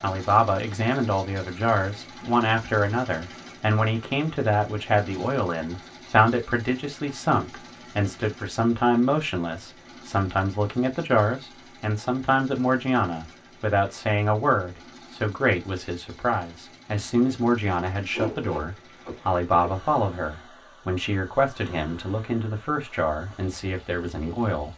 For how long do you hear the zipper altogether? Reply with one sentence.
You can hear the zipper for 2 seconds altogether.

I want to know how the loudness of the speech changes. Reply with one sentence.
The loudness of the speech stays about the same.